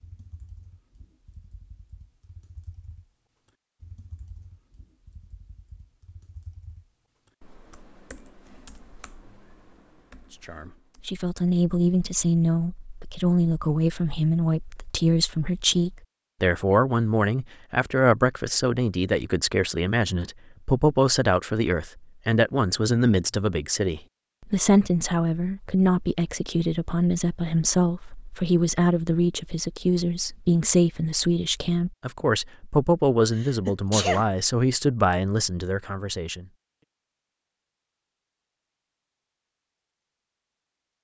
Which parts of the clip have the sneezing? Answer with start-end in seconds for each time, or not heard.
33.4-34.2.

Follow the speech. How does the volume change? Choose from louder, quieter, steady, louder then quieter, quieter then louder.
steady.